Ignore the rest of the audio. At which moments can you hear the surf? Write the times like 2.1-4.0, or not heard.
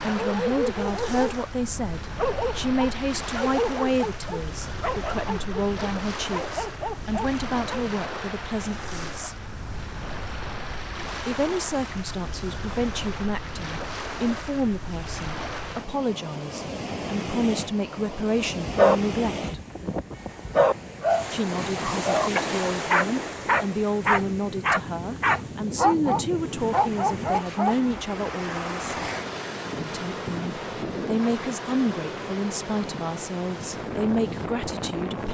0.0-35.2.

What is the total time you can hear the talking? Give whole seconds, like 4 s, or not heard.
31 s.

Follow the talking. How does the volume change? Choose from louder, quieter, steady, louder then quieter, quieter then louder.
steady.